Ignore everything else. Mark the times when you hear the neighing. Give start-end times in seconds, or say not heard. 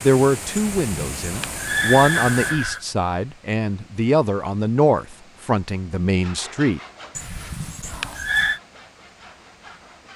0.6-2.8, 7.2-8.6.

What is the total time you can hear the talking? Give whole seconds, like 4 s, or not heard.
7 s.